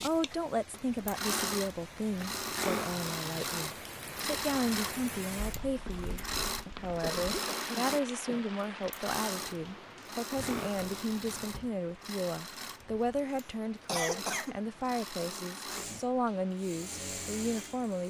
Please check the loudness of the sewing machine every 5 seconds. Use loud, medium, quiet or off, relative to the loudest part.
loud, loud, medium, medium.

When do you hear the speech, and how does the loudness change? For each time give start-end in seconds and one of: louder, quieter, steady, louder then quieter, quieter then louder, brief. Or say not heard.
0.0-18.0 steady.